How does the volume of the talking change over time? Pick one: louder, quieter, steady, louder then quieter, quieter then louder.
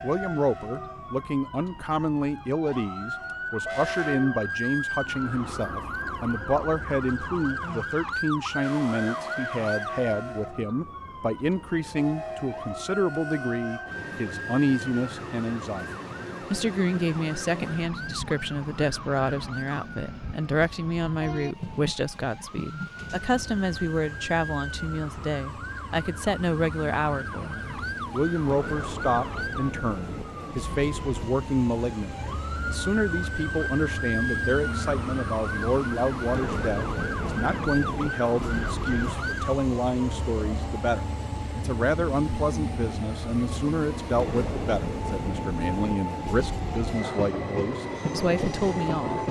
steady.